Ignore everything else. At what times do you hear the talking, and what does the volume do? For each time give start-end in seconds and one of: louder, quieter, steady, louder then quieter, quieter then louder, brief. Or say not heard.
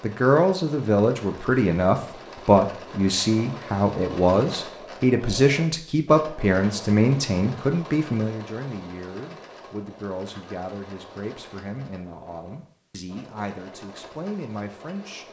0.0-15.2 quieter.